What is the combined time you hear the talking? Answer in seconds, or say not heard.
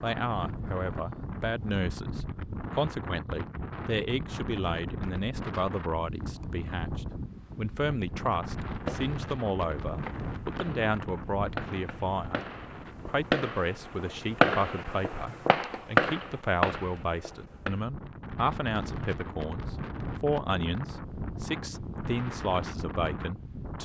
23 s.